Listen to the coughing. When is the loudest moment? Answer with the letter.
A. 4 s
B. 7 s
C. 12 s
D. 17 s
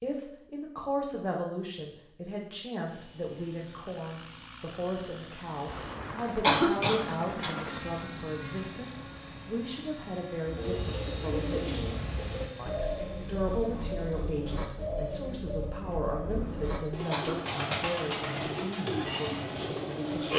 B.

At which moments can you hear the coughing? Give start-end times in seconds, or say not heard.
5.7-7.5, 16.4-17.8.